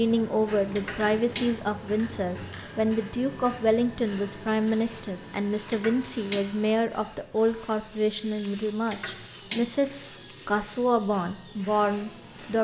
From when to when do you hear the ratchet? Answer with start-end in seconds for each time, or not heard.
0.7-1.4, 5.7-6.4, 8.8-9.6.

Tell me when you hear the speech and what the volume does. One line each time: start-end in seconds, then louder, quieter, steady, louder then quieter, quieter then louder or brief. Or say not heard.
0.0-12.6 steady.